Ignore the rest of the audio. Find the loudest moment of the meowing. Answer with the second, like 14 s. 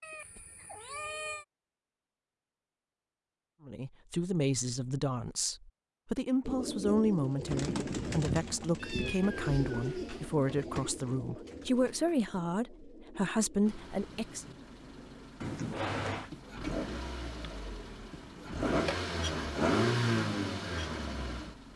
16 s.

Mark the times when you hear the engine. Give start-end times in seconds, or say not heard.
13.7-21.7.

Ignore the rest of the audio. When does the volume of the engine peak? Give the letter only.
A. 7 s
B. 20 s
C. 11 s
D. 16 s
B.